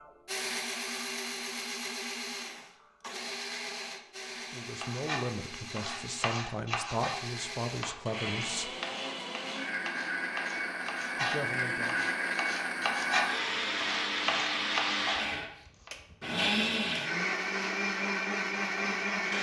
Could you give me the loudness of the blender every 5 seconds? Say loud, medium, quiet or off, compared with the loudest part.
medium, medium, loud, loud.